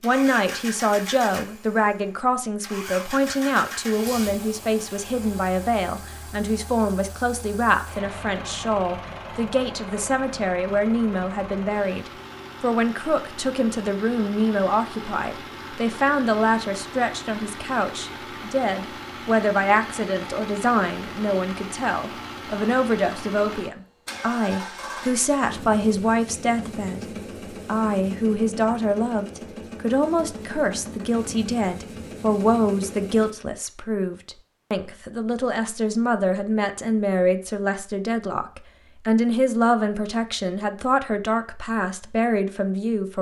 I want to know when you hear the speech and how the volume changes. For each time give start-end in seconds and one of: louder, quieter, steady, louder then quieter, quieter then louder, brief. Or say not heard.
0.0-43.1 steady.